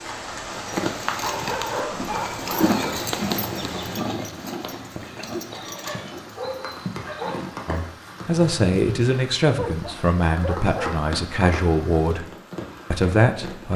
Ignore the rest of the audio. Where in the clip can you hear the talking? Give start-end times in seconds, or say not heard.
7.7-12.2, 12.9-13.7.